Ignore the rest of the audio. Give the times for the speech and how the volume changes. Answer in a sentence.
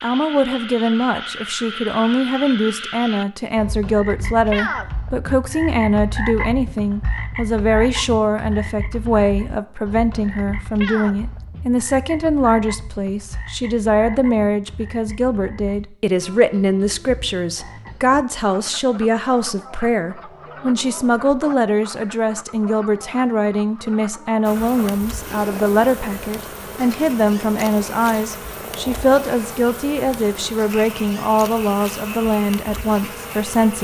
The speech can be heard from 0.0 to 33.7 s, at a steady volume.